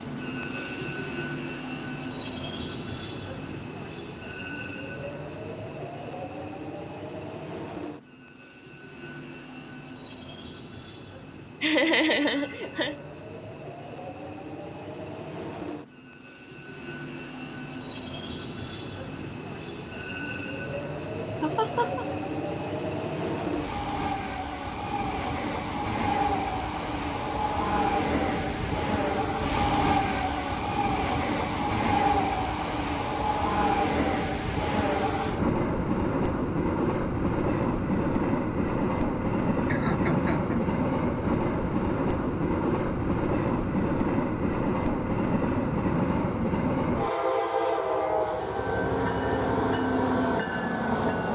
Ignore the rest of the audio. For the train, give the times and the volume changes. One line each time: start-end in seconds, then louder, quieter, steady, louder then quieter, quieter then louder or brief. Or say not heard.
0.0-51.2 louder.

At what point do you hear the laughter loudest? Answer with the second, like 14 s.
12 s.